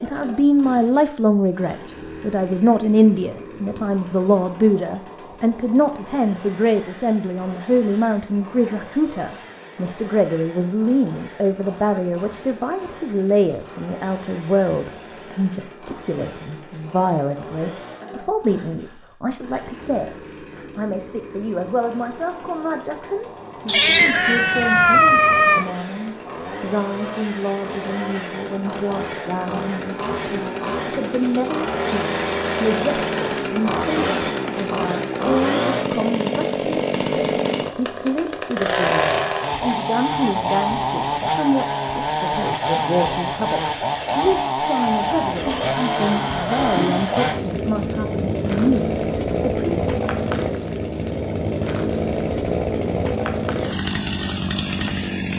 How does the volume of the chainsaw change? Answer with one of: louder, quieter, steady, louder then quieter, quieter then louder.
louder.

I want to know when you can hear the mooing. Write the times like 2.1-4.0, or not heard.
44.9-47.1.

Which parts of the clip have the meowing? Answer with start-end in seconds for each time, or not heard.
23.6-25.6.